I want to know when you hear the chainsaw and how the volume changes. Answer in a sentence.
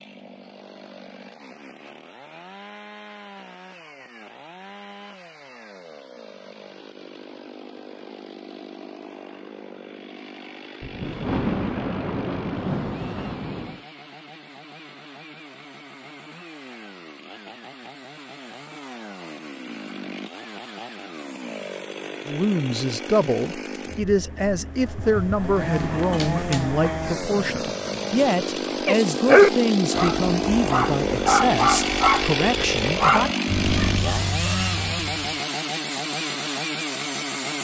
The chainsaw can be heard from 0.0 to 37.5 s, getting louder.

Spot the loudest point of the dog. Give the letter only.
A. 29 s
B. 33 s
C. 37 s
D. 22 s
A.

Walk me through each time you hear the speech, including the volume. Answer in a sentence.
The speech can be heard from 22.2 to 33.3 s, at a steady volume.